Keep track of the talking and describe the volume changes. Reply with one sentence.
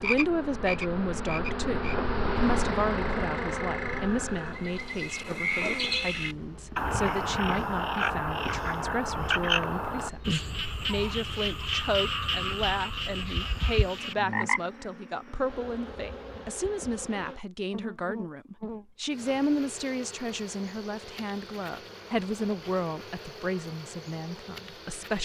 The loudness of the talking stays about the same.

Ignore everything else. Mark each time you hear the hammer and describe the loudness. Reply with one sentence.
The hammer can't be heard in this clip.